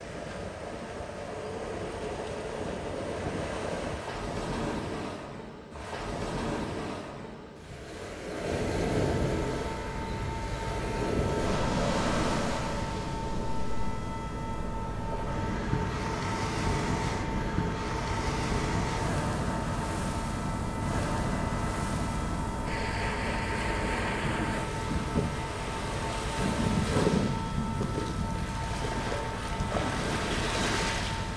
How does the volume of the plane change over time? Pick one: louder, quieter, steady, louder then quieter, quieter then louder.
steady.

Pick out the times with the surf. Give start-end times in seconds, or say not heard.
0.0-31.3.